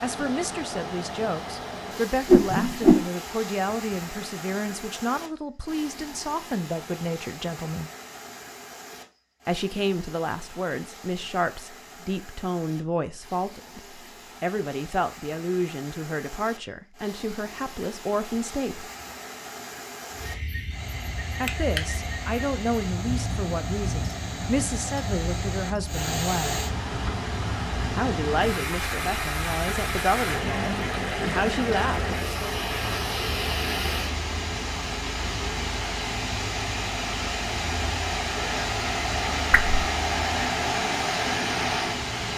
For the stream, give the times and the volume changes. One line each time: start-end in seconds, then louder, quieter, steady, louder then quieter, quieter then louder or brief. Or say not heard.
0.0-42.3 quieter then louder.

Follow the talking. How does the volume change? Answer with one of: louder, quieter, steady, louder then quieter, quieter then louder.
steady.